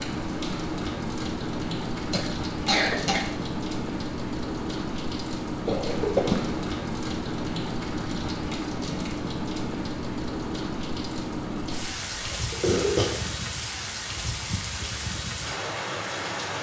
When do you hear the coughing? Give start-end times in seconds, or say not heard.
2.1-3.3, 5.7-6.5, 12.0-13.1.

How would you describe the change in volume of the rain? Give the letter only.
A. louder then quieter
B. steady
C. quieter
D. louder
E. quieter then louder
B.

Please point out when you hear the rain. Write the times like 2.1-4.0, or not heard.
0.0-16.5.